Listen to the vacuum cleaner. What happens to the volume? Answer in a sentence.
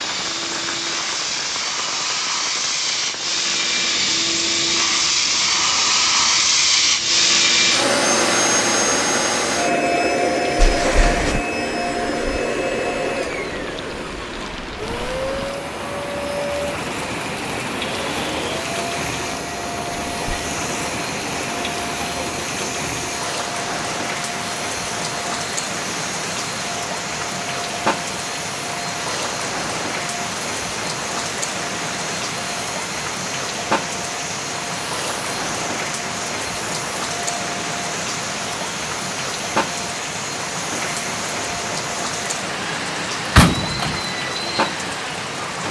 The volume of the vacuum cleaner goes down.